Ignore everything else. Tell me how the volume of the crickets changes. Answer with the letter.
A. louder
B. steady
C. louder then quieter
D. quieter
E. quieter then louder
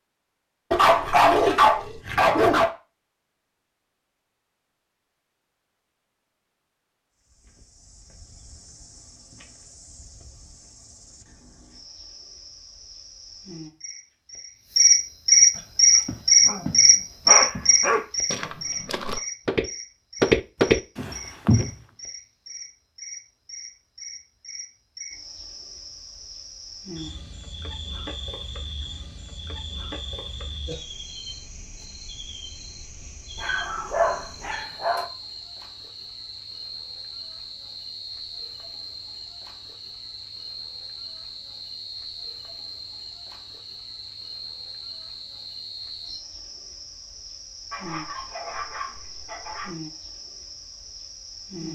D.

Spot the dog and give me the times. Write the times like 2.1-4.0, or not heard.
0.7-2.7, 16.4-18.1, 33.4-35.0, 47.7-49.7.